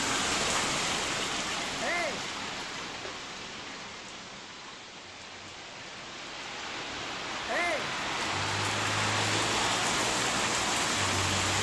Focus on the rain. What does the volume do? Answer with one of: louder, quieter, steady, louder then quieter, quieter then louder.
quieter then louder.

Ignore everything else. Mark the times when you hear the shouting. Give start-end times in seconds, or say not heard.
1.8-2.2, 7.5-8.0.